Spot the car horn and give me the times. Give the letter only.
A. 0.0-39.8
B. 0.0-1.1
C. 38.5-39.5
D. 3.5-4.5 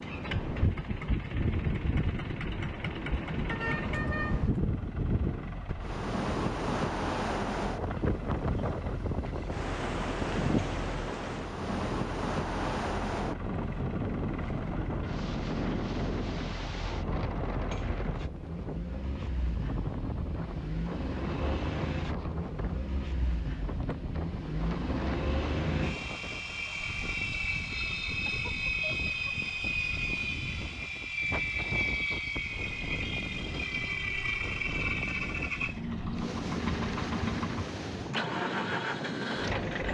D.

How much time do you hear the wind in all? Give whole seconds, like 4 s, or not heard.
40 s.